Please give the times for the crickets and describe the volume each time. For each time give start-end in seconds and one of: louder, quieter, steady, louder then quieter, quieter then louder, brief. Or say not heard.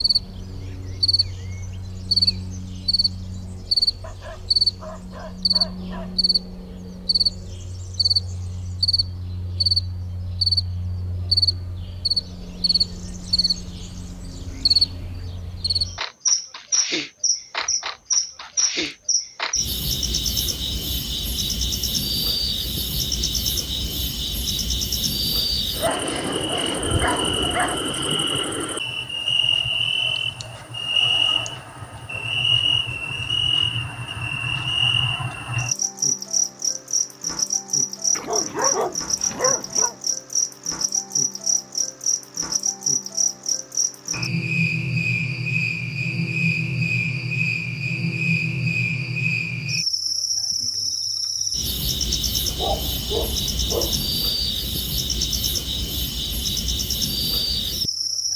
0.0-58.3 steady.